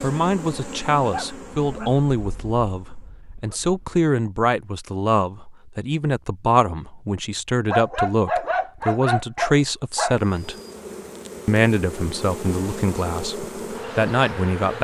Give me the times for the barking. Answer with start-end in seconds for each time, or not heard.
1.1-4.0, 7.7-10.2.